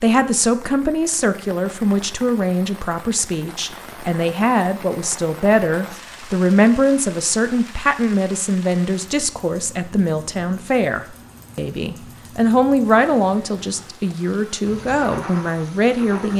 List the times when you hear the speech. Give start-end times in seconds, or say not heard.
0.0-16.3.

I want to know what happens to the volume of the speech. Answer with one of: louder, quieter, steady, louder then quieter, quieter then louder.
steady.